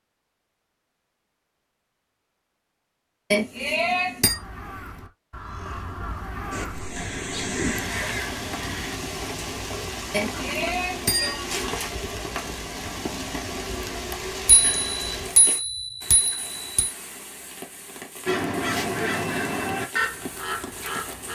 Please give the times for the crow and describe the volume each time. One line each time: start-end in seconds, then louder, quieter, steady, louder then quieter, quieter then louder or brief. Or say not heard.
4.2-8.9 louder
18.2-21.2 brief.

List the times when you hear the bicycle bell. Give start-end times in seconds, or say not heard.
3.3-4.3, 10.1-11.4, 14.4-16.9.